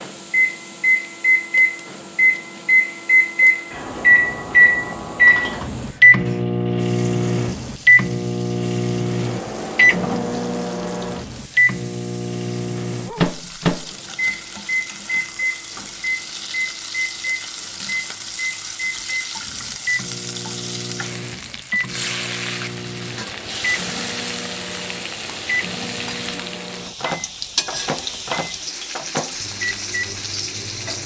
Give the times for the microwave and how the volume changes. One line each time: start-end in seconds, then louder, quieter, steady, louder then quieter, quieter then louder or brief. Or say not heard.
0.0-31.0 quieter.